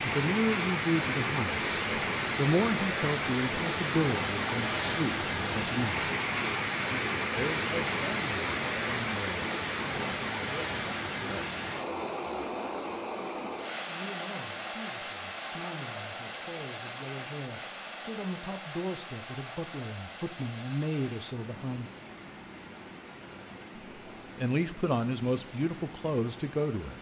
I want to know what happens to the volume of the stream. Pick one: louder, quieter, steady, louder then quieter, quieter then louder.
quieter.